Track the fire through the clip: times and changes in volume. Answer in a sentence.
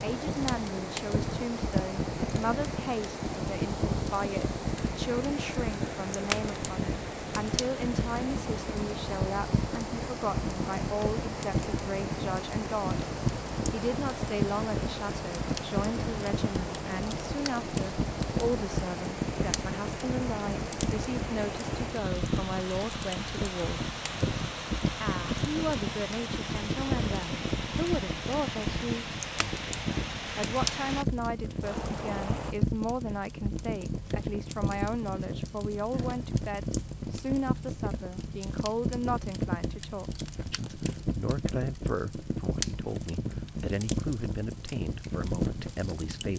The fire can be heard from 0.0 to 46.3 s, at a steady volume.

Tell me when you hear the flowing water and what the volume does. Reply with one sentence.
The flowing water can be heard from 0.0 to 32.5 s, at a steady volume.